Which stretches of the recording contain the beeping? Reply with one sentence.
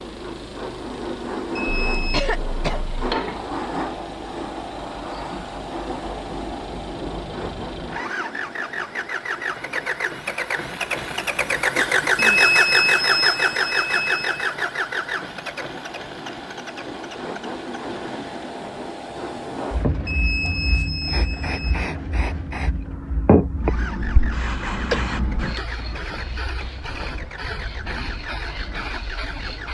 The beeping can be heard from 1.6 to 2.2 s, from 12.2 to 14.5 s and from 20.1 to 21.9 s.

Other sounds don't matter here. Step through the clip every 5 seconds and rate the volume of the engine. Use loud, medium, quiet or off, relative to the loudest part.
quiet, medium, loud, quiet, quiet, quiet.